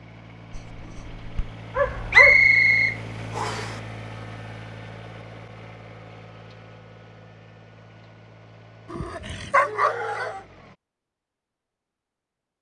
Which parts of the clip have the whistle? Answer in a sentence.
You can hear the whistle from 2.1 to 3.7 s.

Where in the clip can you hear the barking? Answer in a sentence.
The barking can be heard from 0.5 to 2.5 s and from 8.9 to 10.4 s.